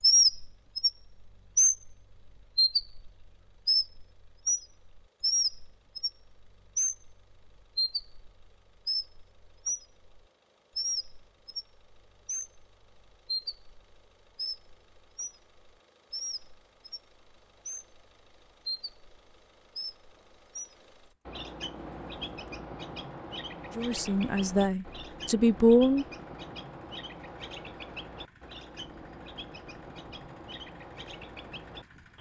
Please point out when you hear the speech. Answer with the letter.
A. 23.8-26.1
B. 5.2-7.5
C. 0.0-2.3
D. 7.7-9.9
A.